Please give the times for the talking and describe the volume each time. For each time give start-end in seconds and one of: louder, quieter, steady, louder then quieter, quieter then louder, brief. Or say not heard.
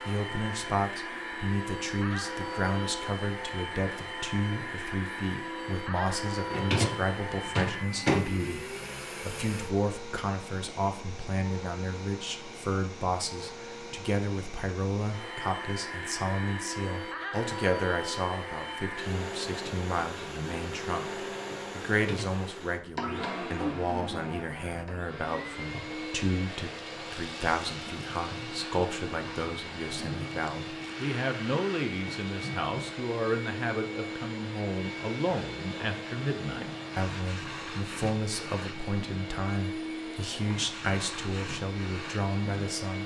0.1-43.0 steady.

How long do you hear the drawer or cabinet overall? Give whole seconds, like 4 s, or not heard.
2 s.